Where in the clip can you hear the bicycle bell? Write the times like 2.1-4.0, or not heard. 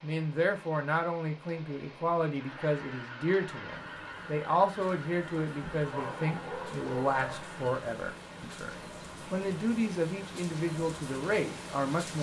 not heard.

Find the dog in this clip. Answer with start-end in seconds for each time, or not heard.
5.6-7.5.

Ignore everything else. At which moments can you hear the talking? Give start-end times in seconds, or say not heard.
0.0-12.1.